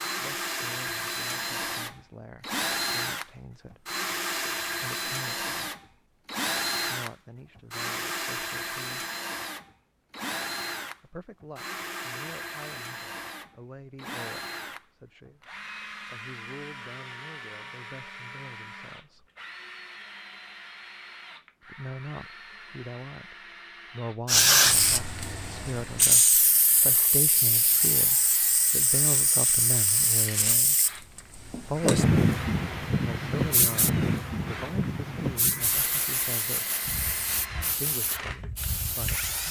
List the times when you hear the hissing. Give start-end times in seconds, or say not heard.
24.2-39.4.